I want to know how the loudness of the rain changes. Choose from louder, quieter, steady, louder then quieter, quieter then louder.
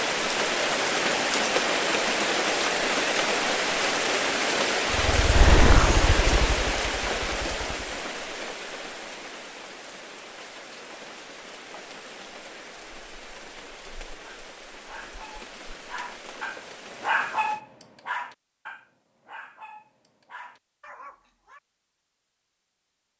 quieter.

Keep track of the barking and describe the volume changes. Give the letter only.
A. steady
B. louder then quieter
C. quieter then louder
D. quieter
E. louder
B.